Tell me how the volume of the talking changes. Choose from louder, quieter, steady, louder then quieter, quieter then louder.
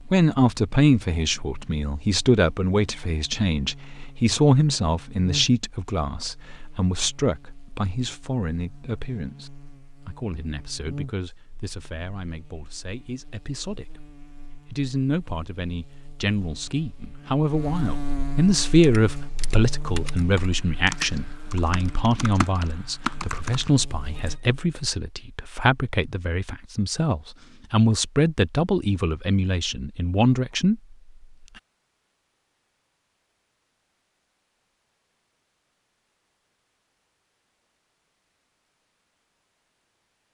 quieter then louder.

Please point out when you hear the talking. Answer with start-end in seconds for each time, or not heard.
0.0-30.8.